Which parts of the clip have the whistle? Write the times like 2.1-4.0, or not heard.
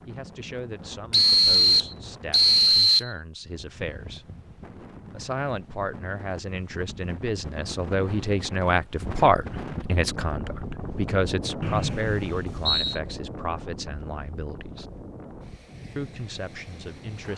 1.1-3.1, 11.6-13.0.